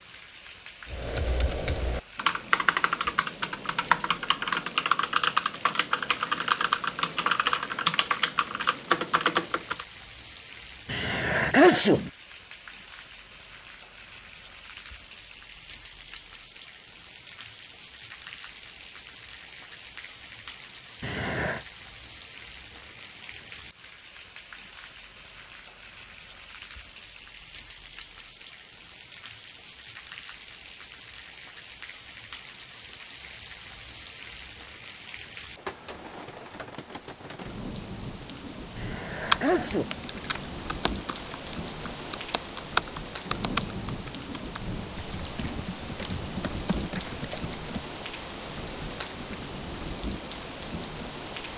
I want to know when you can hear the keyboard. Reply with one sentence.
You can hear the keyboard from 0.8 to 9.8 s and from 39.2 to 47.9 s.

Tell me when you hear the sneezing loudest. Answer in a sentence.
The volume of the sneezing peaks at 12 seconds.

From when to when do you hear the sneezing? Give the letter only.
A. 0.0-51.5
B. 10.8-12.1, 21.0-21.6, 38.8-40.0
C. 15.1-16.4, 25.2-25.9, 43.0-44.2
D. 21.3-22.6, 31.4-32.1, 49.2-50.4
B.